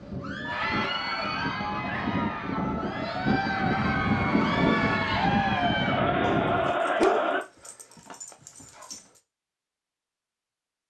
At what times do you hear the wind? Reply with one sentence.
The wind can be heard from 0.0 to 6.8 s.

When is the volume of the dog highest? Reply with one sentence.
The loudest moment of the dog is at 7 seconds.